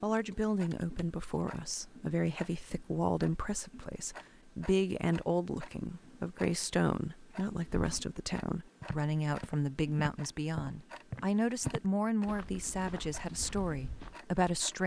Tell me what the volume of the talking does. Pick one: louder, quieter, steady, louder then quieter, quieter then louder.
steady.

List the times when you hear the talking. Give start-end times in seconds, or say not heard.
0.0-14.8.